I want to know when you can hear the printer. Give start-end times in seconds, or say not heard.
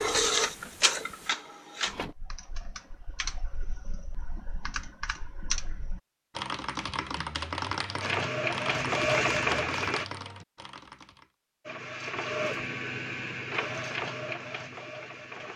0.0-2.1, 8.0-10.1, 11.7-15.5.